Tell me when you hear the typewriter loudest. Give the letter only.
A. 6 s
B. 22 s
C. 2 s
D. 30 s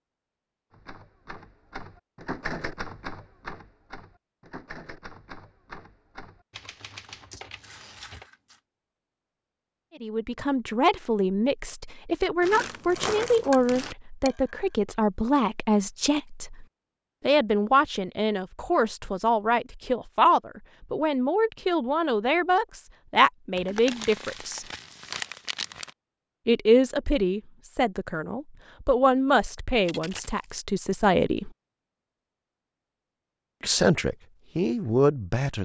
C.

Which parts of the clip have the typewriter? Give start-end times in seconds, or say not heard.
0.7-8.3.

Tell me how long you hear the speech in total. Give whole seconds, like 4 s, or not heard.
22 s.